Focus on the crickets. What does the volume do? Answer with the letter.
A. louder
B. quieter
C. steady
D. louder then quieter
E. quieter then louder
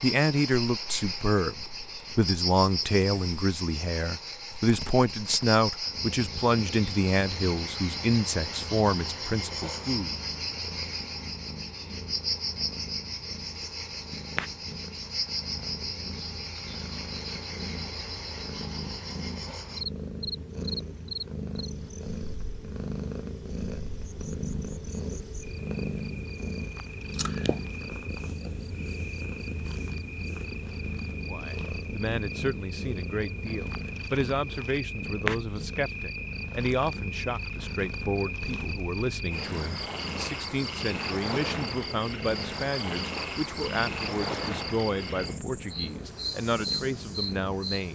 E.